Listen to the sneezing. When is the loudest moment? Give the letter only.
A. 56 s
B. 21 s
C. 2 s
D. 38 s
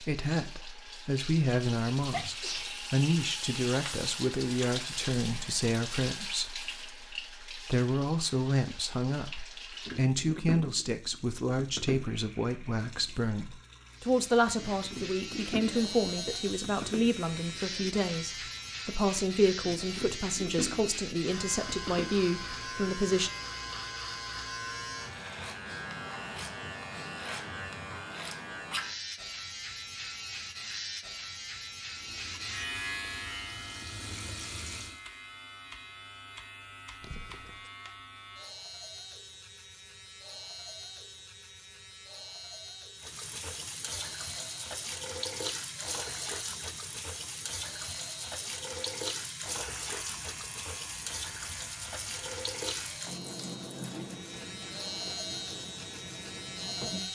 C.